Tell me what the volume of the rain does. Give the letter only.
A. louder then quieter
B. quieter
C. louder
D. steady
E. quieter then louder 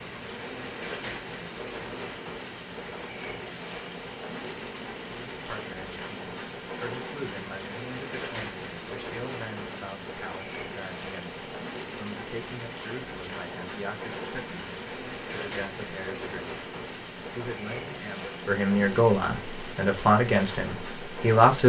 D.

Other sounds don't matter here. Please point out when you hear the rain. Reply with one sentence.
The rain can be heard from 0.0 to 21.6 s.